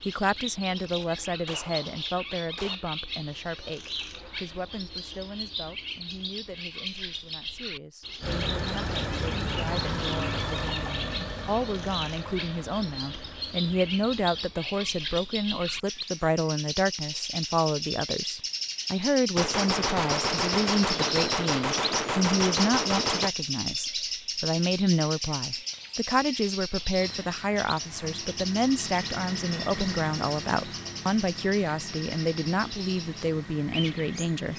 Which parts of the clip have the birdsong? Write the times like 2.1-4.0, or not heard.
0.0-34.5.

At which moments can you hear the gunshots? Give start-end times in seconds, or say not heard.
0.8-2.8, 19.4-23.3.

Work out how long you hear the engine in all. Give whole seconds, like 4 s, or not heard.
14 s.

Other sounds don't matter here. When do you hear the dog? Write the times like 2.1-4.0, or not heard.
not heard.